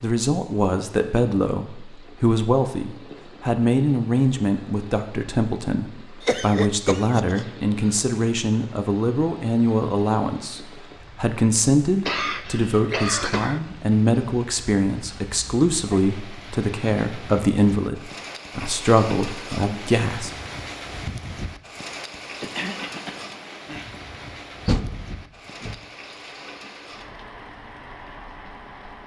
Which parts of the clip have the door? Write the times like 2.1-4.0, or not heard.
24.6-25.8.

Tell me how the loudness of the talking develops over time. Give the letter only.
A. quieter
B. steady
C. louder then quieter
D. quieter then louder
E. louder
B.